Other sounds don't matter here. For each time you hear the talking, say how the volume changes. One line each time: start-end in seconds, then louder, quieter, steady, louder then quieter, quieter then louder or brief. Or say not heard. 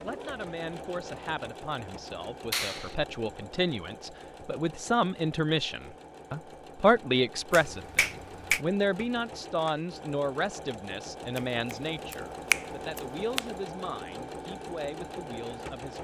0.0-15.9 louder then quieter.